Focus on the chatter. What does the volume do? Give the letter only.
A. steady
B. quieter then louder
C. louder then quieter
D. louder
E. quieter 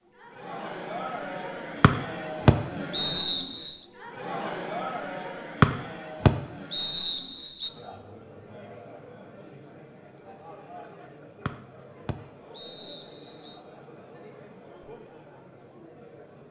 E.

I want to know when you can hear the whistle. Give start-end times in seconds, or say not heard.
1.8-3.7, 5.6-7.7, 11.4-13.6.